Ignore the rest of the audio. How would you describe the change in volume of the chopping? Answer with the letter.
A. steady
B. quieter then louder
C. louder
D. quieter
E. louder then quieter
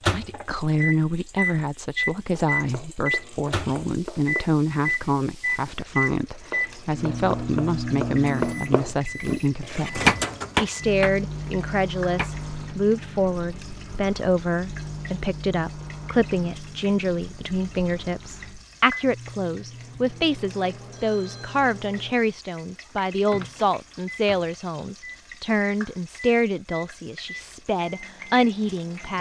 C.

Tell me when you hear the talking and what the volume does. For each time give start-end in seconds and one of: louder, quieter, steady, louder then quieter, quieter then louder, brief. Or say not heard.
0.1-29.1 steady.